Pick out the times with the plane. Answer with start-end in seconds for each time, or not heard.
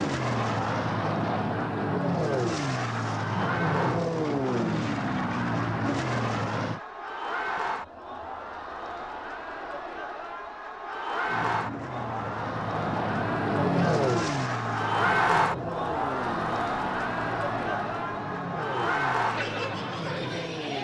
0.0-6.8, 11.2-20.7.